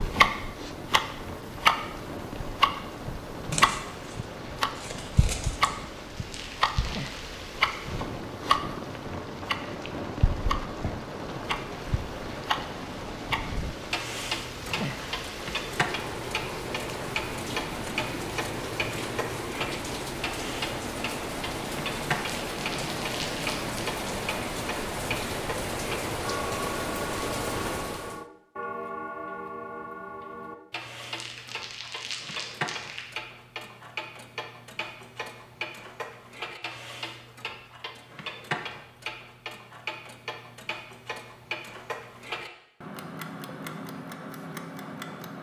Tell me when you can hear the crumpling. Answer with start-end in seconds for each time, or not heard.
6.2-7.3, 22.2-23.8, 31.0-33.0.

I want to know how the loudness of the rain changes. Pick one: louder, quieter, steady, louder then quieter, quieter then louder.
louder.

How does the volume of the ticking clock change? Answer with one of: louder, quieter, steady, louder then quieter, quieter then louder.
quieter.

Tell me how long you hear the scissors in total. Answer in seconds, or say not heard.
2 s.